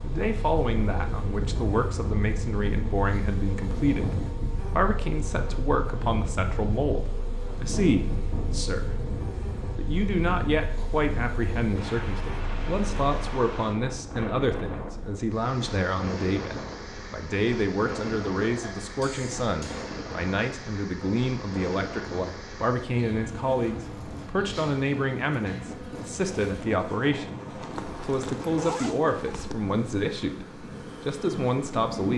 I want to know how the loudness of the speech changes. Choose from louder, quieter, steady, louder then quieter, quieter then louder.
steady.